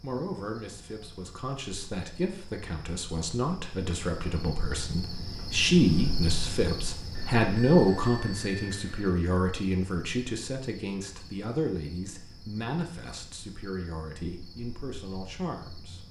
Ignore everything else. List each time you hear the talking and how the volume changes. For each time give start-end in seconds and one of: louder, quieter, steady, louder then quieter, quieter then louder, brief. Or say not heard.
0.0-16.0 louder then quieter.